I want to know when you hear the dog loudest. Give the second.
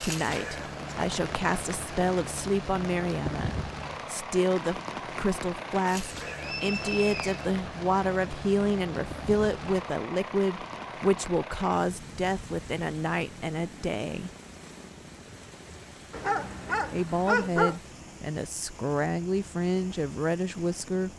17 s.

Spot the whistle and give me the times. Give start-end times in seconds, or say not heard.
6.2-7.5.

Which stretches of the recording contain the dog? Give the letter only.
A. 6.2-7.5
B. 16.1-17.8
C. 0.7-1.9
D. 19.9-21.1
B.